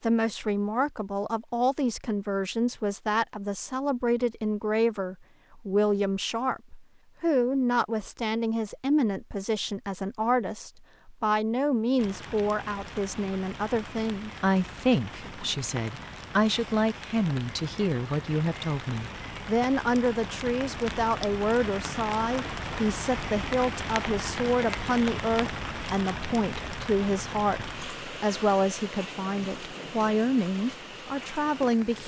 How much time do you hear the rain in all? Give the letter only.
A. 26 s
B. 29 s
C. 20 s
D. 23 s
C.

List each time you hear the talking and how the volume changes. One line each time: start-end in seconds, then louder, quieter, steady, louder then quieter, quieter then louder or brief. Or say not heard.
0.0-32.0 steady.